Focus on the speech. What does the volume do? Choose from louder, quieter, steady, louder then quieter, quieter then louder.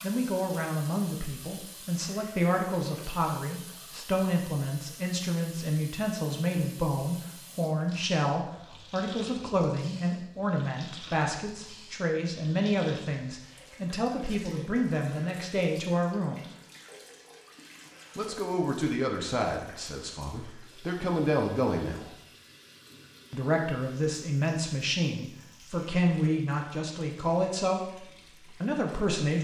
steady.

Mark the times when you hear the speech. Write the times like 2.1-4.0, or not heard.
0.0-16.5, 18.1-22.1, 23.3-29.3.